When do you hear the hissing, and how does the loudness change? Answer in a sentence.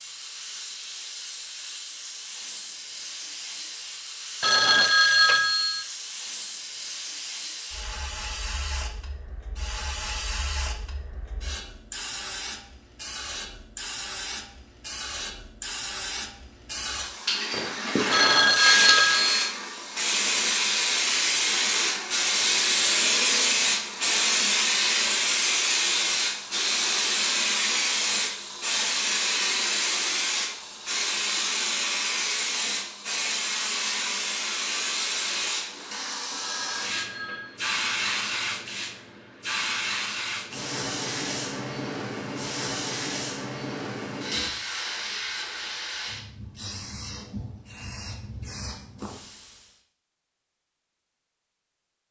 The hissing can be heard from 0.0 to 49.8 s, getting louder then quieter.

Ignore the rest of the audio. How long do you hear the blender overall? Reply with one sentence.
You can't hear the blender here.